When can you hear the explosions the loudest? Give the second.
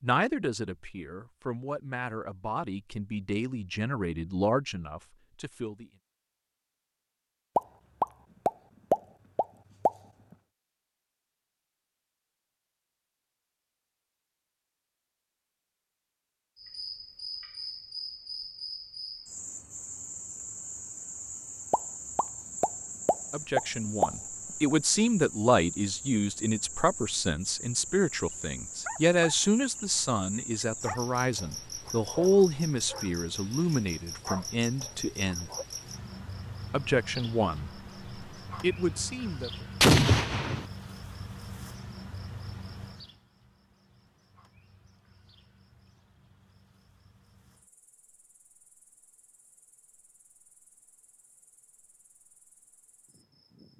40 s.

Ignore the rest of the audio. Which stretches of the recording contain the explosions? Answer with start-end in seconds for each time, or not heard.
7.5-9.9, 21.7-24.1, 39.8-40.6.